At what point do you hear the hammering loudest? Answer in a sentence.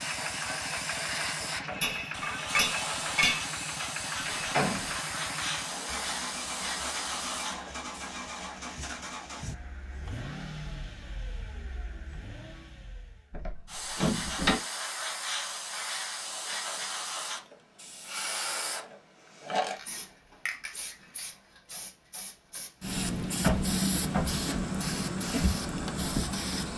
The volume of the hammering peaks at 3 seconds.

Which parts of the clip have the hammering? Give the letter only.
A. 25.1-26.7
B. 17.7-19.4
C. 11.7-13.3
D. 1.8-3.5
D.